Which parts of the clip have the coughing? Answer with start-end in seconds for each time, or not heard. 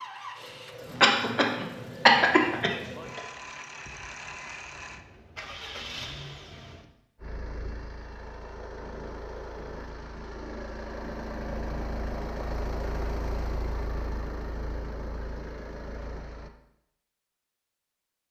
1.0-3.2.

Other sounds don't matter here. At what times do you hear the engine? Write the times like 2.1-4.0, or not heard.
0.0-16.5.